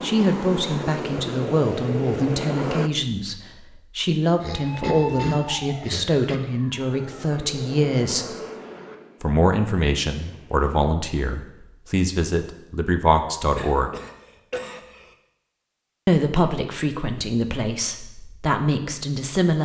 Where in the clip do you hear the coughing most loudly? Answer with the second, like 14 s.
5 s.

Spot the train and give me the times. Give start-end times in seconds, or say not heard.
0.0-2.9, 7.0-10.8.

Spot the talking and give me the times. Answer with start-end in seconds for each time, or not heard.
0.0-8.3, 9.2-13.9, 16.1-19.6.